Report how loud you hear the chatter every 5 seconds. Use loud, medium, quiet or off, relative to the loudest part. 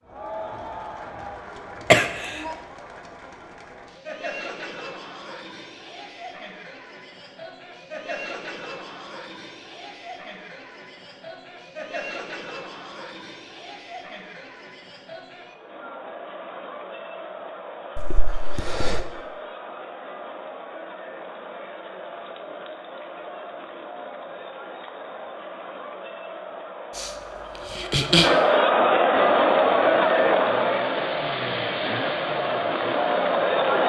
quiet, quiet, quiet, quiet, quiet, loud, loud.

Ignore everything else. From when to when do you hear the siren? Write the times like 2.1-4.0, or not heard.
not heard.